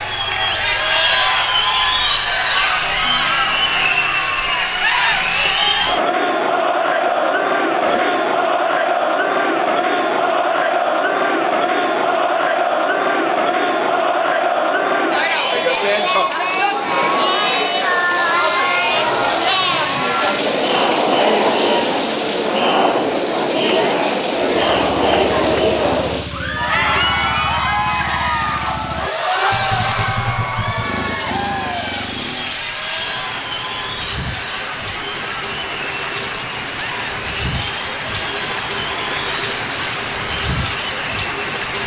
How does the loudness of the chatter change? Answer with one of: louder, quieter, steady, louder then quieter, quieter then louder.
quieter.